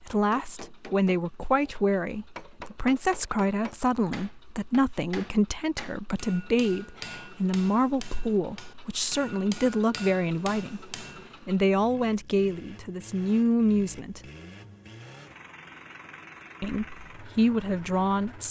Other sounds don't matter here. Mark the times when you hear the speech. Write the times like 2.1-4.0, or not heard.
0.0-14.2, 16.6-18.4.